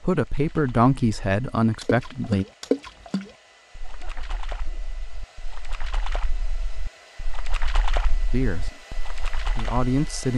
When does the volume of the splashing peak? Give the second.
3 s.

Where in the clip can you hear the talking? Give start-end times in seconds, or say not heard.
0.0-2.5, 8.3-8.8, 9.5-10.3.